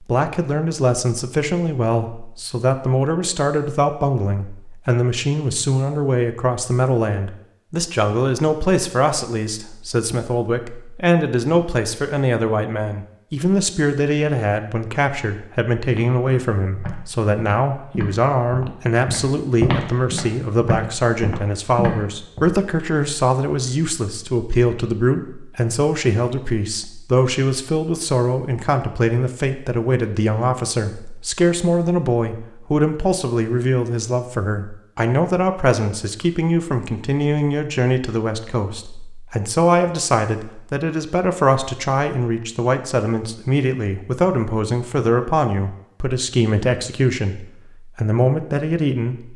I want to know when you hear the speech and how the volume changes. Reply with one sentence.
You can hear the speech from 0.1 to 49.3 s, at a steady volume.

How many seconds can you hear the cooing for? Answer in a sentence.
You can't hear the cooing here.